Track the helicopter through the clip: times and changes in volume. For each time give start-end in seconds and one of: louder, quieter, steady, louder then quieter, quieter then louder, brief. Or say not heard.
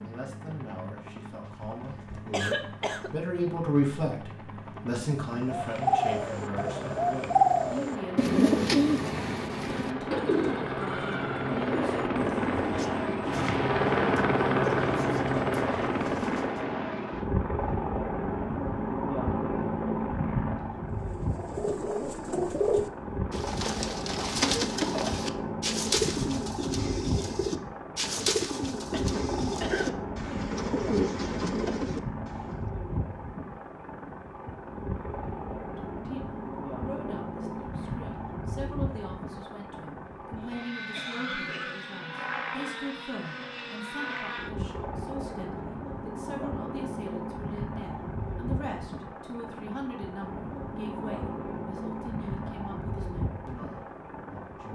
0.0-54.6 louder then quieter.